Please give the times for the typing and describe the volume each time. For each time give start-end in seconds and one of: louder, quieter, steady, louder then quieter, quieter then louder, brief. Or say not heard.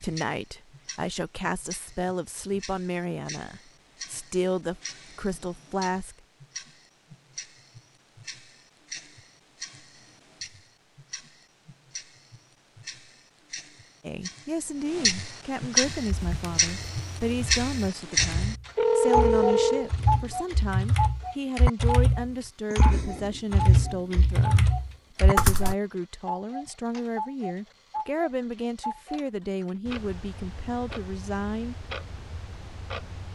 16.0-25.8 louder.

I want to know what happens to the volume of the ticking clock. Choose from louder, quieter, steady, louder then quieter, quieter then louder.
louder then quieter.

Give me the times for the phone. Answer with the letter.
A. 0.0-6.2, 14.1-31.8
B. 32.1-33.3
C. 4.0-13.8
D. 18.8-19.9
D.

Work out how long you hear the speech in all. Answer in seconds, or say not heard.
24 s.